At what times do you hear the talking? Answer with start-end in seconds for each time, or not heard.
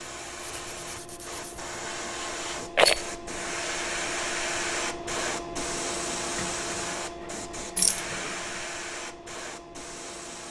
not heard.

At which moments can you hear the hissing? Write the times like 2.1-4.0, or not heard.
0.0-10.4.